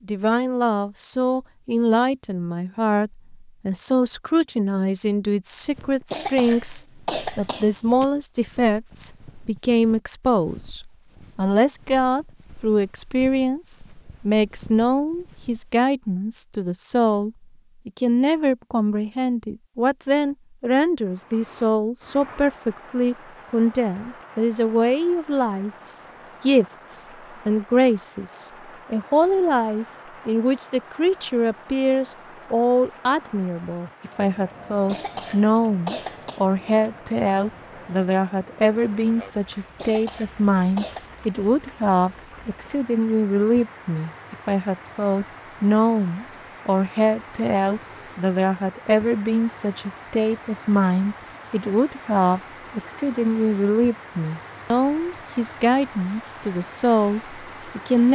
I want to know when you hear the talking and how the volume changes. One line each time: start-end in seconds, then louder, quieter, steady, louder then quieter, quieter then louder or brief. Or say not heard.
0.1-58.0 steady.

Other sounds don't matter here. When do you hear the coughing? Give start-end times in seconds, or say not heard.
6.1-8.1, 34.9-36.4, 39.8-41.2.